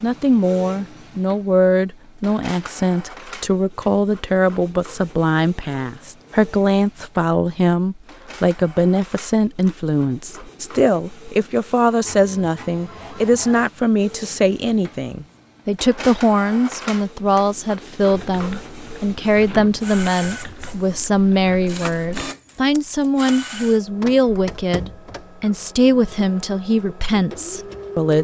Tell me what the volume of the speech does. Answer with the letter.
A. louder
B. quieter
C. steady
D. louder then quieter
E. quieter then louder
C.